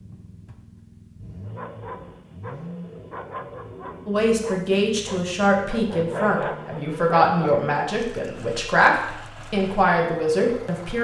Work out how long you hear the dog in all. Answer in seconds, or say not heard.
6 s.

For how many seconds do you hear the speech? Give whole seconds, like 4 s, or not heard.
7 s.